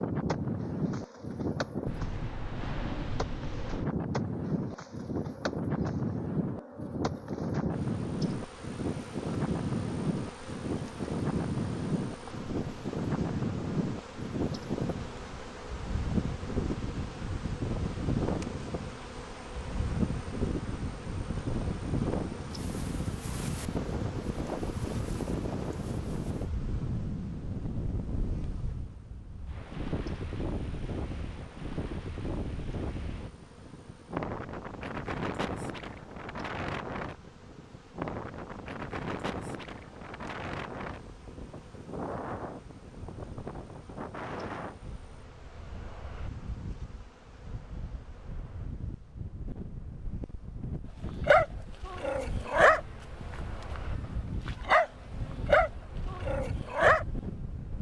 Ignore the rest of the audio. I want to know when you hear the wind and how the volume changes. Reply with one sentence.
You can hear the wind from 0.0 to 57.7 s, getting quieter.